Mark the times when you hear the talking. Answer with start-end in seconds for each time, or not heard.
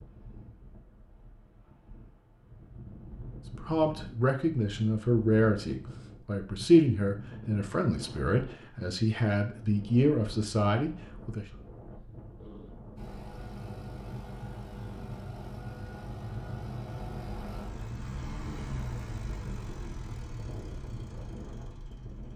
3.5-11.4.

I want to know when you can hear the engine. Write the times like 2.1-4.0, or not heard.
12.9-22.3.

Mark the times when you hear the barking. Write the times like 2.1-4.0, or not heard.
not heard.